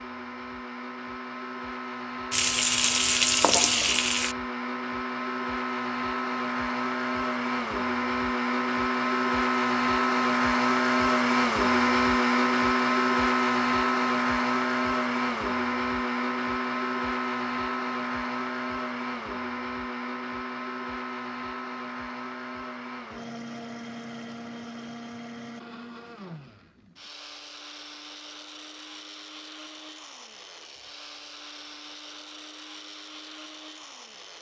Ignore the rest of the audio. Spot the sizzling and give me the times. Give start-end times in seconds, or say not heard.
2.3-4.3.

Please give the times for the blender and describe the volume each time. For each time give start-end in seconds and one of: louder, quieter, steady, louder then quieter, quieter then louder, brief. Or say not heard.
0.0-34.3 louder then quieter.